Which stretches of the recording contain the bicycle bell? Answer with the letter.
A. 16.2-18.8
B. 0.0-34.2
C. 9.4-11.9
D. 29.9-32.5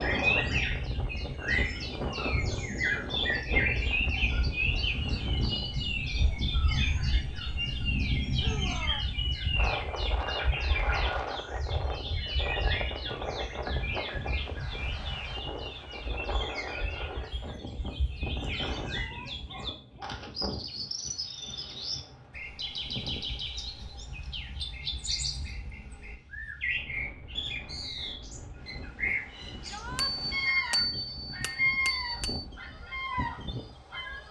D.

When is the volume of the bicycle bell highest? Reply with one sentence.
The loudest moment of the bicycle bell is at 31 seconds.